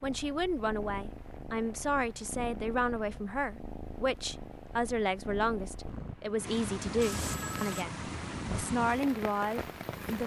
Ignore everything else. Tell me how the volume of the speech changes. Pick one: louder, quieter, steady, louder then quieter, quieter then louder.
steady.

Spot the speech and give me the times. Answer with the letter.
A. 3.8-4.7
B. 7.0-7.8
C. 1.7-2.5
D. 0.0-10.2
D.